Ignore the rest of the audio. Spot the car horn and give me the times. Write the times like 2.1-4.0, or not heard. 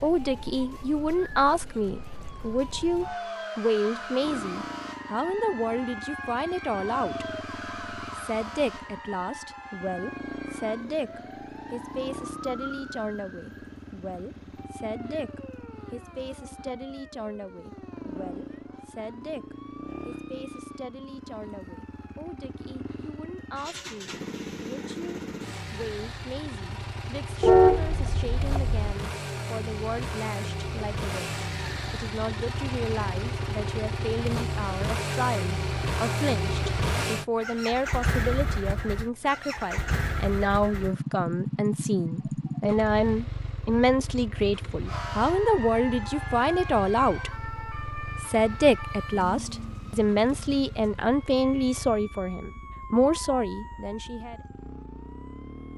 27.4-28.9.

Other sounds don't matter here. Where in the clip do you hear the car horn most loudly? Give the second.
28 s.